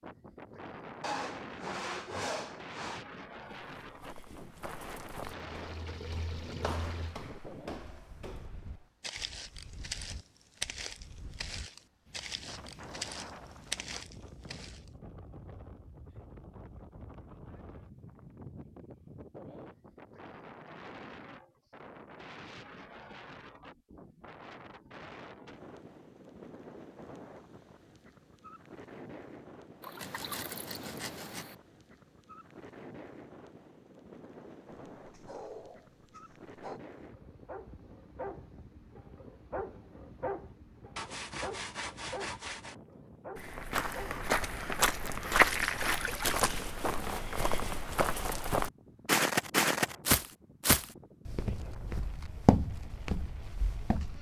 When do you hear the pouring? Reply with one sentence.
The pouring can be heard from 5.2 to 7.2 s, from 29.8 to 31.6 s and from 45.4 to 46.7 s.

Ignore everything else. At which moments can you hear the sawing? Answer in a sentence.
You can hear the sawing from 1.0 to 3.0 s, from 29.9 to 31.4 s and from 41.0 to 42.8 s.